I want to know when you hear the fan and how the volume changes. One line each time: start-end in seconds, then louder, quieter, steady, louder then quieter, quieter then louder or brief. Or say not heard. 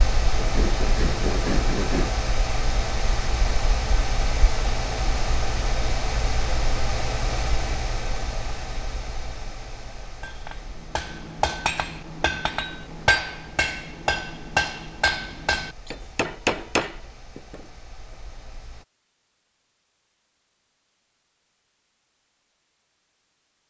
0.0-18.9 quieter.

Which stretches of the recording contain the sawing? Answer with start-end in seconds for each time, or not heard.
0.3-2.1.